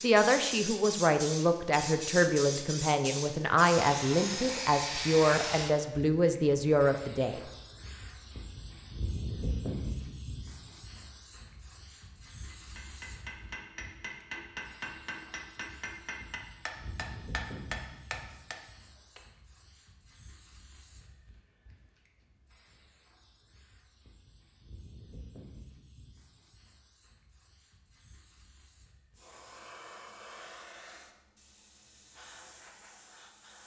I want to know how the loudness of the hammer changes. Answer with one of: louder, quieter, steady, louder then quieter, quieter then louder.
louder.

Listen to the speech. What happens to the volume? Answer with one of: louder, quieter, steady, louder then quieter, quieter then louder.
steady.